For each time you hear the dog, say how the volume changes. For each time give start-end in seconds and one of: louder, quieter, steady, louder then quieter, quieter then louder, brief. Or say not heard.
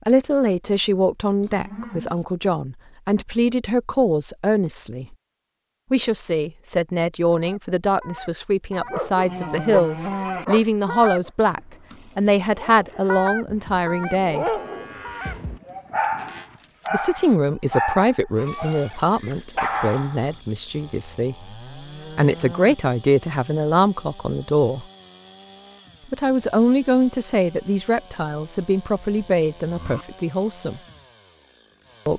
8.9-20.3 quieter then louder.